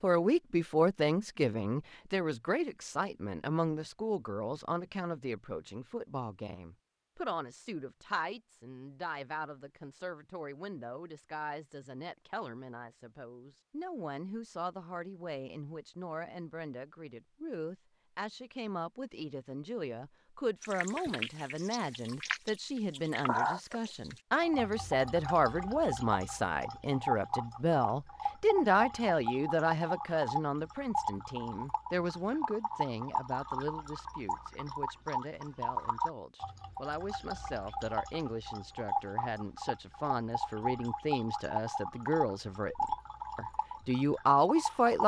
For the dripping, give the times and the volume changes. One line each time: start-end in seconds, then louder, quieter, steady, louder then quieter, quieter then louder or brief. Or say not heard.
20.6-45.0 steady.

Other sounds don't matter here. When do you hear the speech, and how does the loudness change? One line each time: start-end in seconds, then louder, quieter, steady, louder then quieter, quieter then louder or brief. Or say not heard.
0.0-45.0 quieter then louder.